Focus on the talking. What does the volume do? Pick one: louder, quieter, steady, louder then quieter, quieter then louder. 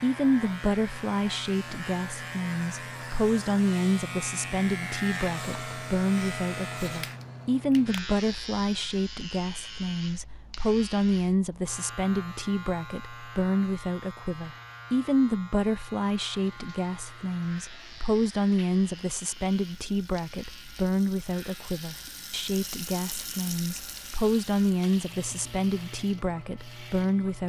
steady.